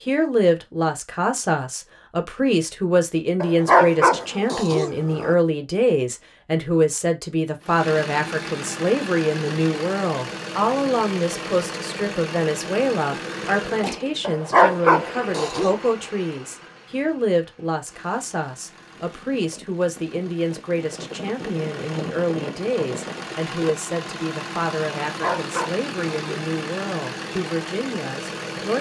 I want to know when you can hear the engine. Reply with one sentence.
The engine can be heard from 7.6 to 28.7 s.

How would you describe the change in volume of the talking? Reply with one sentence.
The volume of the talking goes down.